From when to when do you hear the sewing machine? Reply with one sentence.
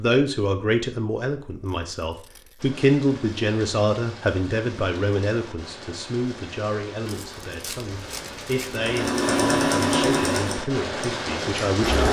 The sewing machine can be heard from 8.8 to 12.0 s.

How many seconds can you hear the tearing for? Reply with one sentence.
You can hear the tearing for 3 seconds altogether.